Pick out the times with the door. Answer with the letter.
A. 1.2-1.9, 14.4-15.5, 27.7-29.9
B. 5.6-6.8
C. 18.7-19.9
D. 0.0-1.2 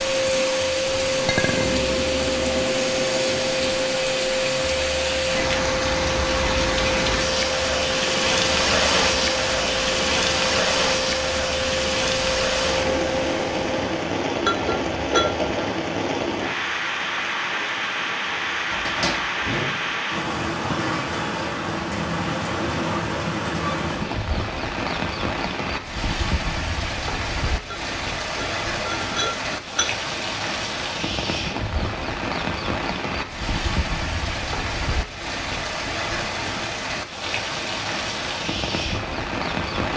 C.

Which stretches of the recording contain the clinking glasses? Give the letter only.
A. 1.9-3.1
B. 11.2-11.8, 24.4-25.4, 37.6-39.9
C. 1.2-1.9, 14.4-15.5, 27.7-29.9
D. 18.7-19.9
C.